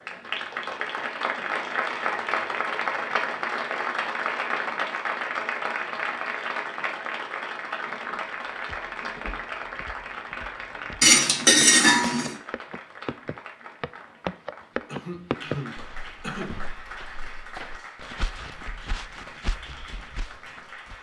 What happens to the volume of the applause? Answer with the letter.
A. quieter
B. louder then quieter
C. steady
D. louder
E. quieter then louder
A.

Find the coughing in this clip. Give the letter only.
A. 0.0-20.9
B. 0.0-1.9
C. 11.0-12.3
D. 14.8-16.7
D.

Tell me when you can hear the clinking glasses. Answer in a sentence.
You can hear the clinking glasses from 11.0 to 12.3 s.